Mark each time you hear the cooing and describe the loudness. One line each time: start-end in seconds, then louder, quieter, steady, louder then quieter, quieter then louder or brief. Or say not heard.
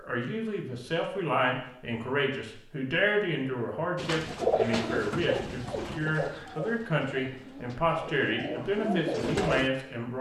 4.0-9.7 quieter then louder.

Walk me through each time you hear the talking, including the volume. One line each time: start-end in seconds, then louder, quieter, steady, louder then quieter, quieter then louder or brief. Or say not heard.
0.0-10.1 steady.